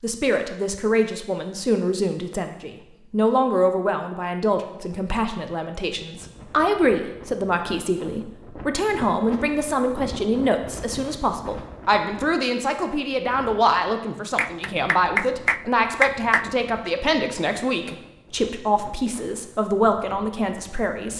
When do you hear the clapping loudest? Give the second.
16 s.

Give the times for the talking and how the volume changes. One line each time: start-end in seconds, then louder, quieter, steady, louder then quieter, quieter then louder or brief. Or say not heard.
0.0-21.1 steady.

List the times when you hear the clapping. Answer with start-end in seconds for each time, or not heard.
14.3-16.9.